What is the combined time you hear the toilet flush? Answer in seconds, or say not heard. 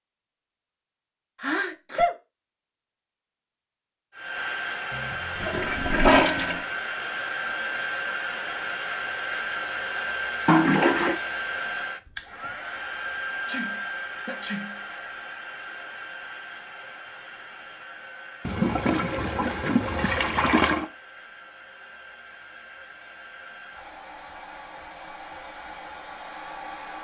5 s.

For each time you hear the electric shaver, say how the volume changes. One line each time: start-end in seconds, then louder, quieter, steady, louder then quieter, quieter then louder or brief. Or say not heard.
not heard.